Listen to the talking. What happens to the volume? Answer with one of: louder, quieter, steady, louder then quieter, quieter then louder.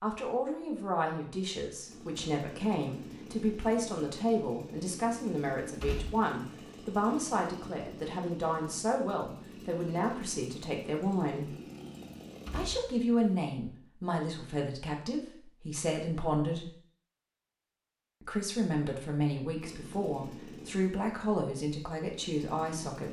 steady.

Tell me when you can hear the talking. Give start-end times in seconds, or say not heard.
0.0-11.6, 12.5-16.7, 18.2-23.0.